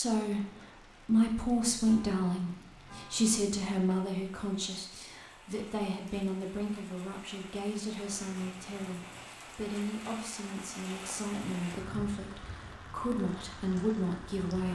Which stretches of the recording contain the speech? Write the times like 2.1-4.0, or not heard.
0.0-14.7.